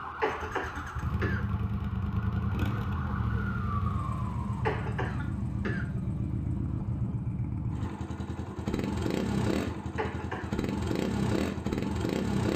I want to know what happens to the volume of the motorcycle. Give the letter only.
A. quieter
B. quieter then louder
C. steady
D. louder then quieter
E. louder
C.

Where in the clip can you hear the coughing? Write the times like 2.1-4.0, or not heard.
0.2-1.4, 4.7-5.8, 9.9-10.6.